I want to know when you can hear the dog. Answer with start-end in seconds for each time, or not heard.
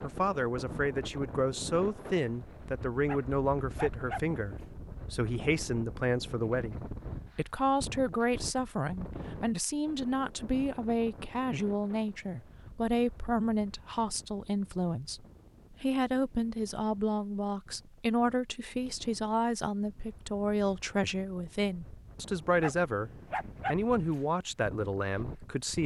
3.0-4.7, 22.6-24.2.